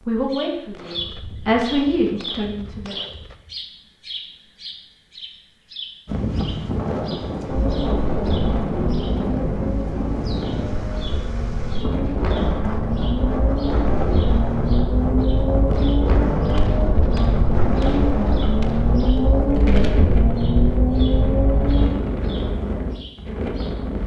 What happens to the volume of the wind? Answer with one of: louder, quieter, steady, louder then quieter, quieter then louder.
steady.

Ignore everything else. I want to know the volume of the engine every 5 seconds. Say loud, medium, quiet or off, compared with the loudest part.
off, medium, medium, loud, loud.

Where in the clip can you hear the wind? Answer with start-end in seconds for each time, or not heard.
6.0-24.0.